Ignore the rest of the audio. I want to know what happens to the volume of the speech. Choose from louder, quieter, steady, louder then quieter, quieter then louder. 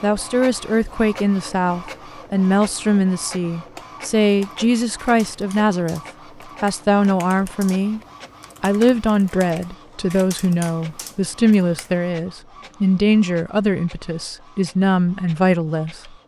steady.